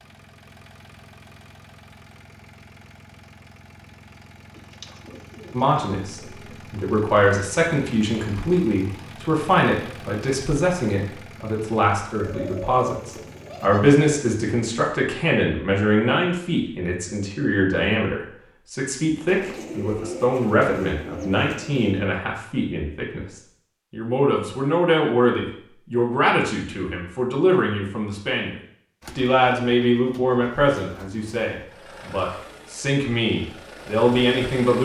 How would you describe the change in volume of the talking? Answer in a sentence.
The loudness of the talking stays about the same.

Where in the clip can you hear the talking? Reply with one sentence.
The talking can be heard from 5.5 to 34.7 s.